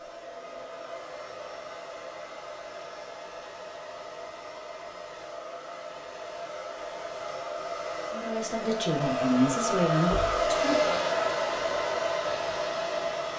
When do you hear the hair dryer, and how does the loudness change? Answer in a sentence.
The hair dryer can be heard from 0.0 to 13.3 s, getting louder.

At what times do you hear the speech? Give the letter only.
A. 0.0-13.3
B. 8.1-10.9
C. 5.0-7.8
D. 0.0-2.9
B.